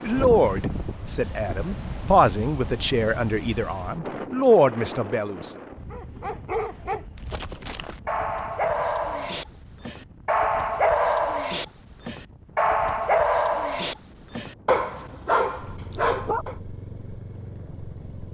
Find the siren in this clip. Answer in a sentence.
You can't hear the siren here.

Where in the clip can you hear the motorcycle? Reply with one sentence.
You can hear the motorcycle from 15.6 to 18.2 s.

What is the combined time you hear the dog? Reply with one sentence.
You can hear the dog for 11 seconds altogether.